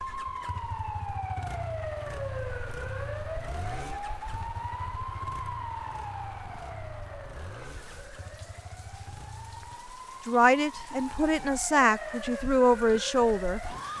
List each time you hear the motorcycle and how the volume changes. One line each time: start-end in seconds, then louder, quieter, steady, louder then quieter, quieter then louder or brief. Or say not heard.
0.0-9.8 quieter.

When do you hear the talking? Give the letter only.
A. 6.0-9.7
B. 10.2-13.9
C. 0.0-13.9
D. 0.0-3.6
B.